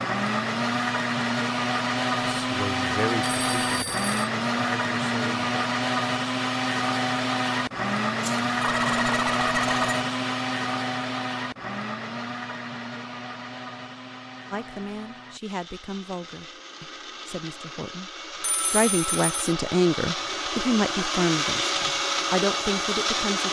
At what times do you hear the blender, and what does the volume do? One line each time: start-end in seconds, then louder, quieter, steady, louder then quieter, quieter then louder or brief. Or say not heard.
0.0-23.4 quieter then louder.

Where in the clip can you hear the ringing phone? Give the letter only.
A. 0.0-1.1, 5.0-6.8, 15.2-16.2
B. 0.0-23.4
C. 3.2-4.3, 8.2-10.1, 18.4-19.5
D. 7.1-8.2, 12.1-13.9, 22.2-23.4
C.